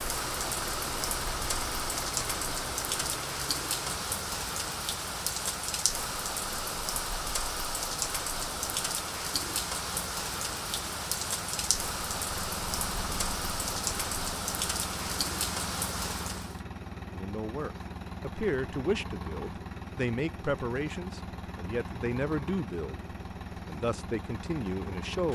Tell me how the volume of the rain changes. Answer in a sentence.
The loudness of the rain stays about the same.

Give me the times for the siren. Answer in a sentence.
The siren can't be heard in this clip.